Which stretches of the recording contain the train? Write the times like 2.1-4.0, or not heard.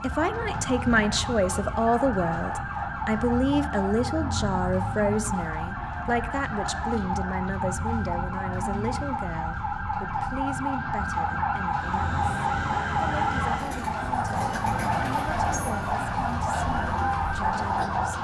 11.7-18.1.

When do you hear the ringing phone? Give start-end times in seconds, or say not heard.
not heard.